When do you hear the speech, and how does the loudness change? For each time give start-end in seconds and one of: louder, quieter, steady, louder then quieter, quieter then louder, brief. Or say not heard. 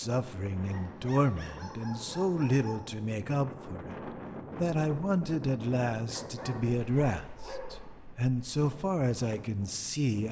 0.0-10.2 steady.